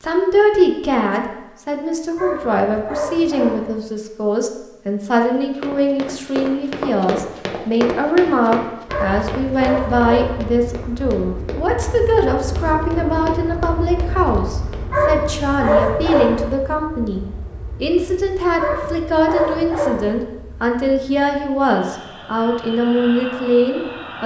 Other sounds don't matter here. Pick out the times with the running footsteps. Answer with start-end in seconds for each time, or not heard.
5.2-15.1.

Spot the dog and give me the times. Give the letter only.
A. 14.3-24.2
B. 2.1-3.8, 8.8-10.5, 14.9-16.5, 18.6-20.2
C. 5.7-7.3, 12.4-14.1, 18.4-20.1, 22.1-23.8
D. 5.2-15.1
B.